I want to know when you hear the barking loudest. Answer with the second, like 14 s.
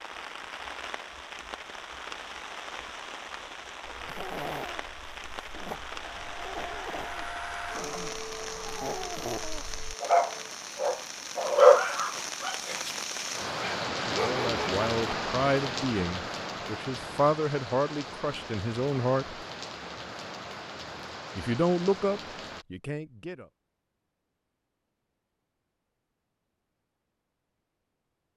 12 s.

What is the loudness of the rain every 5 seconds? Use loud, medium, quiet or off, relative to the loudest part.
medium, medium, loud, loud, medium, off.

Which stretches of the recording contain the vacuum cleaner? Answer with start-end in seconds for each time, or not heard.
6.0-10.6.